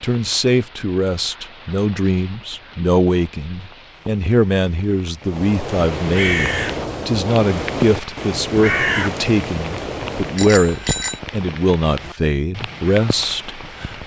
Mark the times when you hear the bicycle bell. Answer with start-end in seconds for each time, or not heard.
10.3-11.2.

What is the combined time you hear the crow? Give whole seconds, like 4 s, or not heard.
5 s.